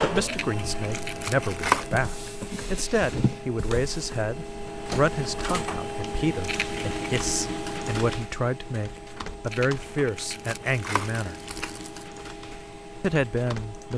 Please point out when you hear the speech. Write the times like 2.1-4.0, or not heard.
0.0-11.3, 13.0-13.9.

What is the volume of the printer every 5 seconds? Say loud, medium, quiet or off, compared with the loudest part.
loud, loud, medium.